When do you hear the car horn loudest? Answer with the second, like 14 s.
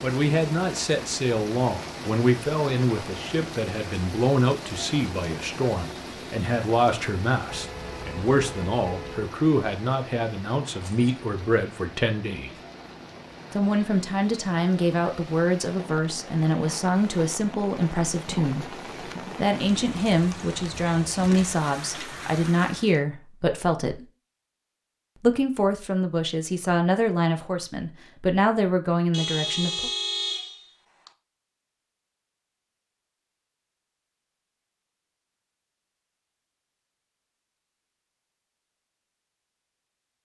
30 s.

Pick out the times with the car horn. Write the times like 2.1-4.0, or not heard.
7.5-9.3, 29.1-31.1.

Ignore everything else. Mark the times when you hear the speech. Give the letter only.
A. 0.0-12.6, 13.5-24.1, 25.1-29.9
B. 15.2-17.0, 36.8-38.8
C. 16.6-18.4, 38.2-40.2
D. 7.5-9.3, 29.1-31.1
A.